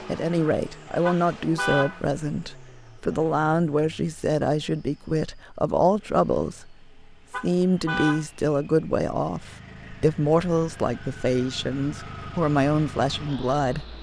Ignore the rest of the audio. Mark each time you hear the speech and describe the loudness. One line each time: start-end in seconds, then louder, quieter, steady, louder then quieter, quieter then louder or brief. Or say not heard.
0.1-13.9 steady.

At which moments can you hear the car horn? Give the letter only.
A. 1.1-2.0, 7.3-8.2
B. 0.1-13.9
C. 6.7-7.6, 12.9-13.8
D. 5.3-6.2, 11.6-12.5
A.